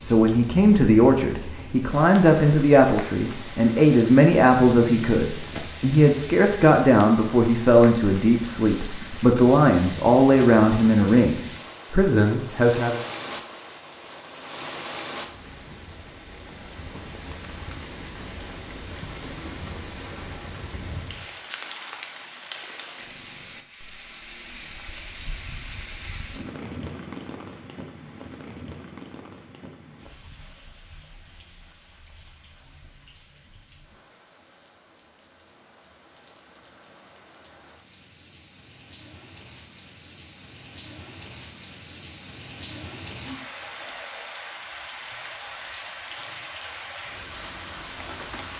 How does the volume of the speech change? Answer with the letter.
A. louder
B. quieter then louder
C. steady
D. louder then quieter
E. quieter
C.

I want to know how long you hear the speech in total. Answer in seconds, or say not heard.
13 s.